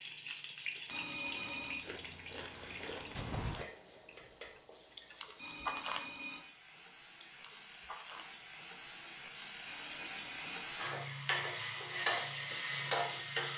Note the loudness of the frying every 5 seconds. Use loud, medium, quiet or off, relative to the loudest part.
medium, medium, loud.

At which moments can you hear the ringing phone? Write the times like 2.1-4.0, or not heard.
0.9-1.9, 5.3-6.5, 9.7-10.8.